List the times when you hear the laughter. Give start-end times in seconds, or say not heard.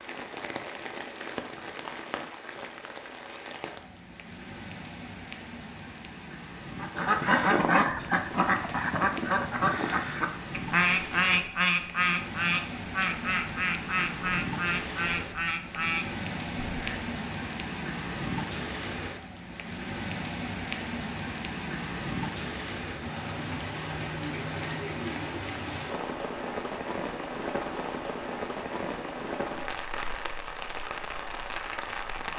not heard.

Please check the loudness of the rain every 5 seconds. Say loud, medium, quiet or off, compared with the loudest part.
medium, medium, loud, loud, loud, loud, loud.